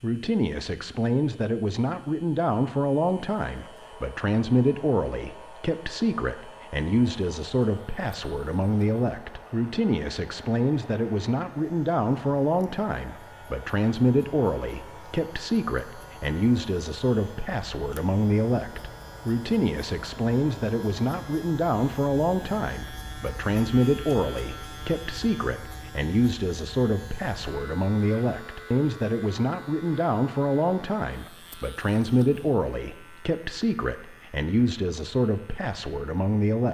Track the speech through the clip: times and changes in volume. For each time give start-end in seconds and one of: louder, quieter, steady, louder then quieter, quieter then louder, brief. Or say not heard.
0.0-36.6 steady.